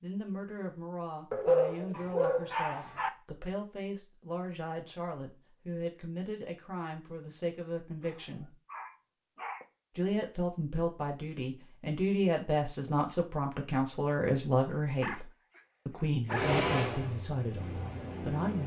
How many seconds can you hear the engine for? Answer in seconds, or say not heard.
2 s.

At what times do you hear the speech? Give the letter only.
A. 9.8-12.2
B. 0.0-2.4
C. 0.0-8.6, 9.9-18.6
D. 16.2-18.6
C.